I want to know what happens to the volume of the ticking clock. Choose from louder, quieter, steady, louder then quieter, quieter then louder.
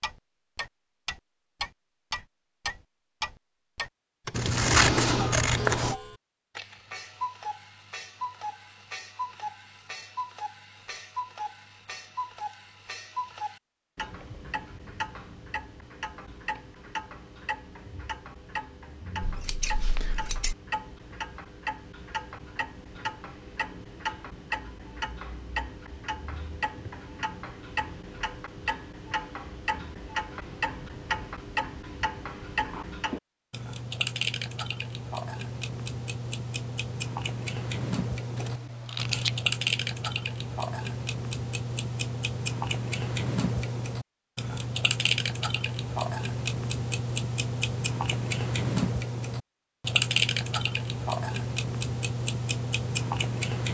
louder.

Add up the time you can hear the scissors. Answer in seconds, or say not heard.
4 s.